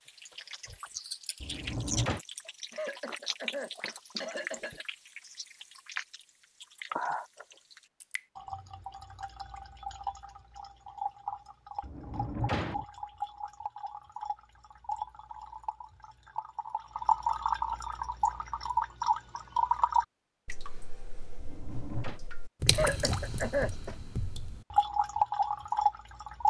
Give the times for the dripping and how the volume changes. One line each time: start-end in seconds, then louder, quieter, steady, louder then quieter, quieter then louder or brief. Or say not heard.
0.0-26.4 louder.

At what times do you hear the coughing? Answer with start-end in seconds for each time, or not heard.
2.7-4.8, 22.7-23.9.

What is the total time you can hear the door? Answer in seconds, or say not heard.
3 s.